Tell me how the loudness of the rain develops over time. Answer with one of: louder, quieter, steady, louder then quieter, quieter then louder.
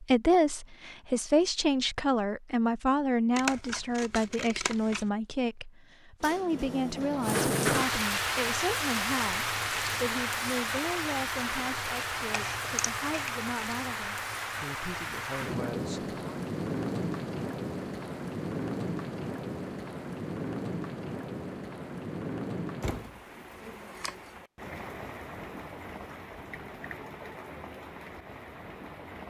quieter.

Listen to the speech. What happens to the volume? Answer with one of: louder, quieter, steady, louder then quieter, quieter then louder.
quieter.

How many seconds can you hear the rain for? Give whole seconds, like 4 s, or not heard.
22 s.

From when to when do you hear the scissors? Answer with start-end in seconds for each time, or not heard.
3.4-5.1, 12.2-13.3, 23.9-24.3.